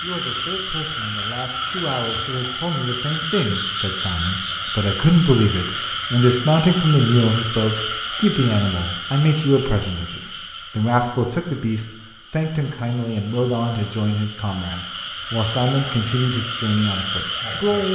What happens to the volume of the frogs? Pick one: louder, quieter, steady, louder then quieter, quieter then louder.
quieter then louder.